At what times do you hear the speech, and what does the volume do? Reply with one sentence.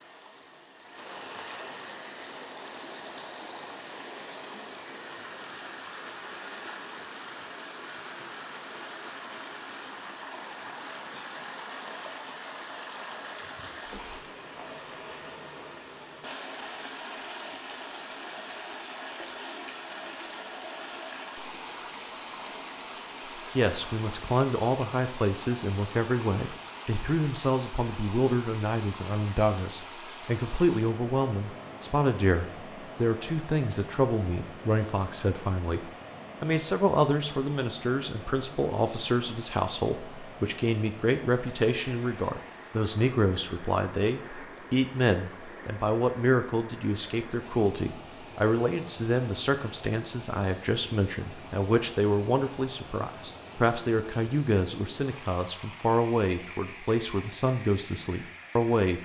You can hear the speech from 23.6 to 59.0 s, at a steady volume.